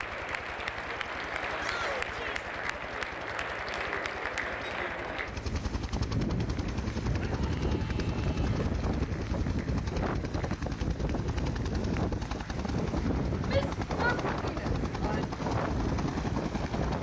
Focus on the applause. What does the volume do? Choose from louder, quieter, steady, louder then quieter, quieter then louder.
quieter.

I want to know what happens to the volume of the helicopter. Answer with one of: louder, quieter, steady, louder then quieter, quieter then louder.
louder.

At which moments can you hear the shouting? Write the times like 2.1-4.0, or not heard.
1.6-2.5, 7.2-8.8, 13.4-15.3.